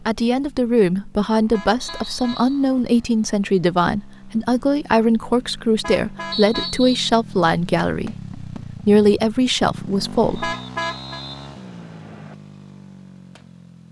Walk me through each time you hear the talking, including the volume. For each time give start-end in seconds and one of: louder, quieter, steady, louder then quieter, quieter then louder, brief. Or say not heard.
0.0-10.6 steady.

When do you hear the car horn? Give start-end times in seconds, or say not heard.
1.5-2.5, 5.8-6.7, 10.4-11.2.